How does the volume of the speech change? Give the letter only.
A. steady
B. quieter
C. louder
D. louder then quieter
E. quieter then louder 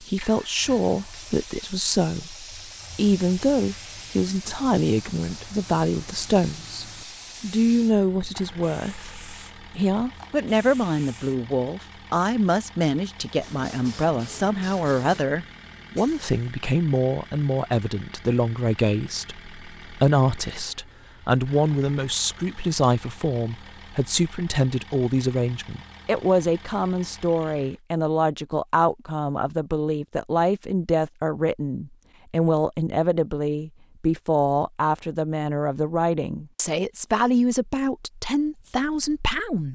A.